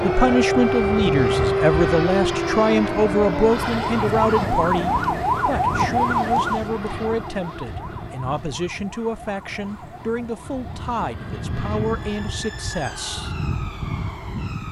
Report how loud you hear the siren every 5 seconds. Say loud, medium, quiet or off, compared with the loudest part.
loud, loud, quiet.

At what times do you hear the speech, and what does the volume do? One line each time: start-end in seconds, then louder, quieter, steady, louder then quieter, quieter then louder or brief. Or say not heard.
0.0-13.3 quieter.